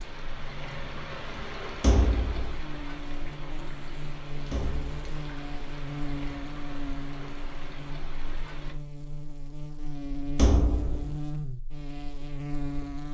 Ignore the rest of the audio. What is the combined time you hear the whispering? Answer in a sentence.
The whispering can't be heard in this clip.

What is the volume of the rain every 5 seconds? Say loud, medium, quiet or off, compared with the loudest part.
loud, loud, off.